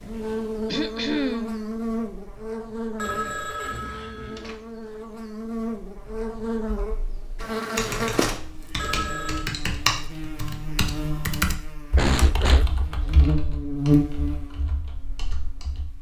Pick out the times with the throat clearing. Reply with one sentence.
You can hear the throat clearing from 0.7 to 1.6 s and from 11.9 to 12.8 s.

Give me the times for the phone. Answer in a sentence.
The phone can be heard from 3.0 to 4.5 s and from 8.8 to 9.4 s.